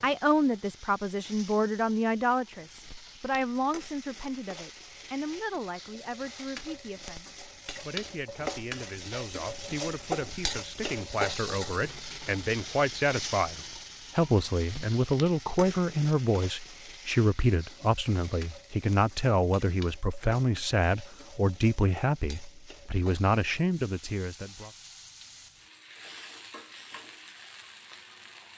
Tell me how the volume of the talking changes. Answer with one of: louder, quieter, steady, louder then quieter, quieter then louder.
quieter then louder.